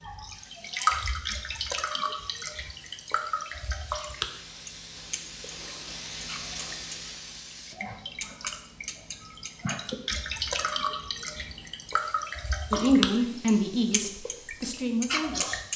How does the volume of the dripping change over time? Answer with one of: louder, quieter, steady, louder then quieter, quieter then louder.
quieter then louder.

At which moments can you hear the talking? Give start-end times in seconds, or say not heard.
12.7-15.6.